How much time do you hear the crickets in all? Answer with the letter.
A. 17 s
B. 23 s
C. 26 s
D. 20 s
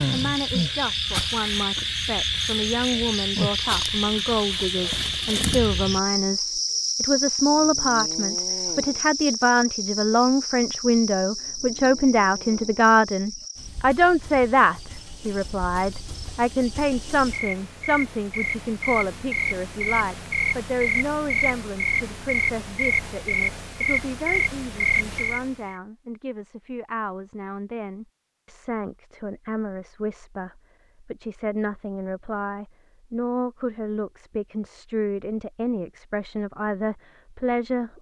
C.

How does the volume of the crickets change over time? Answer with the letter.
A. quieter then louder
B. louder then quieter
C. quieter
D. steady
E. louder
A.